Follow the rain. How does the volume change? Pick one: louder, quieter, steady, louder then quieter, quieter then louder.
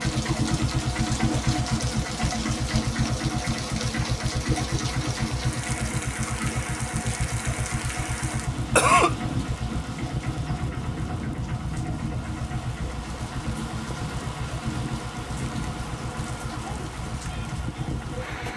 steady.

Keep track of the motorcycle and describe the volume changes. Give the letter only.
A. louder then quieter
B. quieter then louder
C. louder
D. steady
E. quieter
E.